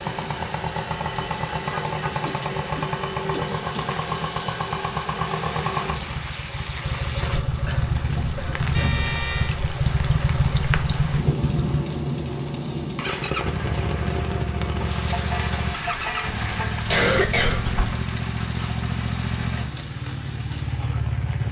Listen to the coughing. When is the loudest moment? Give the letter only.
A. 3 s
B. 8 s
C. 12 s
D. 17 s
D.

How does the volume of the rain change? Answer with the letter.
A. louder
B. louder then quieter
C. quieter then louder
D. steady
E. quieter
B.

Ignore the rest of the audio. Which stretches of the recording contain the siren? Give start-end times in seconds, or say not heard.
not heard.